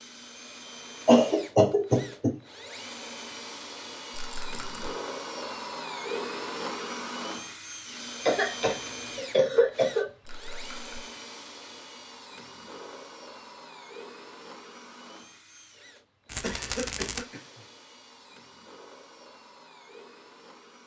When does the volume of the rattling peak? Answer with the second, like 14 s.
17 s.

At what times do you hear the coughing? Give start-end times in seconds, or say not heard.
1.1-2.3, 8.2-10.1, 16.4-17.6.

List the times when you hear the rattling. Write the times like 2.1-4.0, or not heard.
4.1-4.9, 10.2-10.9, 16.2-17.2.